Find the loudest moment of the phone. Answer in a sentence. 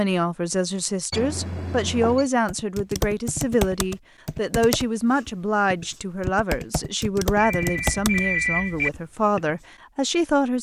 The loudest moment of the phone is at 8 seconds.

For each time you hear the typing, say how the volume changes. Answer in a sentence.
You can hear the typing from 2.5 to 8.2 s, getting quieter then louder; and briefly from 8.9 to 9.6 s.